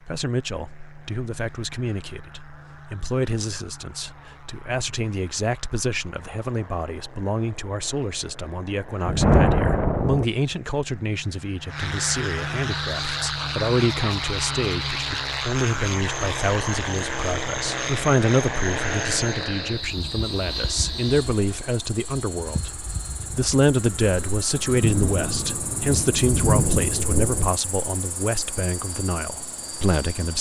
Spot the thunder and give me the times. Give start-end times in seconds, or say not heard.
9.1-10.2, 24.6-27.5.